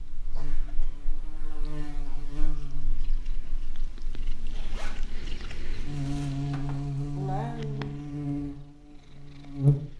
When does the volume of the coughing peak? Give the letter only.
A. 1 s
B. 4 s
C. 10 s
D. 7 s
D.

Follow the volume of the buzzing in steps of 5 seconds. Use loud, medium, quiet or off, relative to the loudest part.
quiet, loud.